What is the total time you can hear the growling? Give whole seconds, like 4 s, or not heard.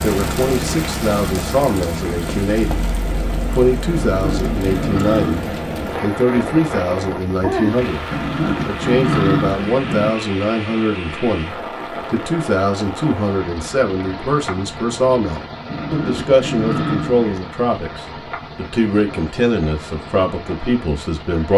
5 s.